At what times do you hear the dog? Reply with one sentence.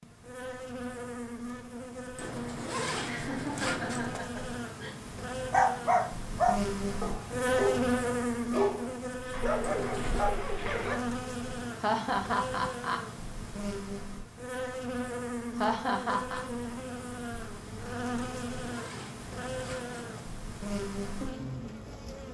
You can hear the dog from 5.5 to 11.0 s.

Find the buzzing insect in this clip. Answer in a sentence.
The buzzing insect can be heard from 0.0 to 22.2 s.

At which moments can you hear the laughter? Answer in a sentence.
You can hear the laughter from 3.0 to 5.0 s, from 11.8 to 13.0 s and from 15.6 to 16.4 s.